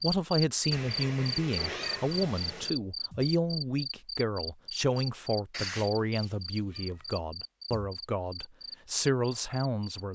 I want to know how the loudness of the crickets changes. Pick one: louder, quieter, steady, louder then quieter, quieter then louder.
quieter.